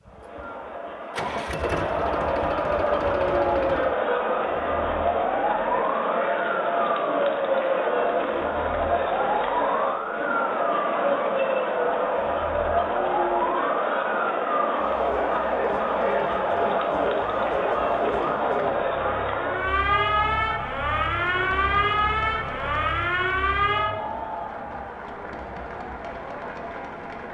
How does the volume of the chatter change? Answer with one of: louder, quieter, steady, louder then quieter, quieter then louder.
quieter.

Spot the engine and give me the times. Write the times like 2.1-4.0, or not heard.
0.1-4.0.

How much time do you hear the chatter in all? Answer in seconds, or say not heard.
27 s.